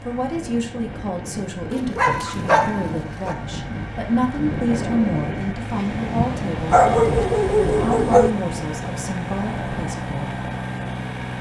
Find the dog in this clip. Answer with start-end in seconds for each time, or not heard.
1.7-3.4, 6.7-8.3.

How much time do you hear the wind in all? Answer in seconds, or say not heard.
11 s.